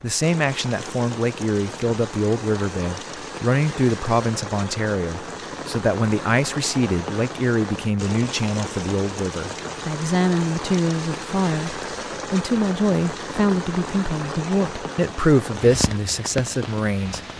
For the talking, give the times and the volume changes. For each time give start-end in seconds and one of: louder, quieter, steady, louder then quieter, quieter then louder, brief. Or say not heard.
0.0-17.2 steady.